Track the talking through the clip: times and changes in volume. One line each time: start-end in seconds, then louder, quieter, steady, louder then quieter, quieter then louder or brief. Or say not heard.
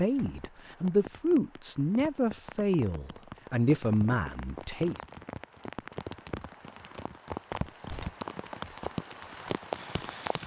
0.0-5.0 steady.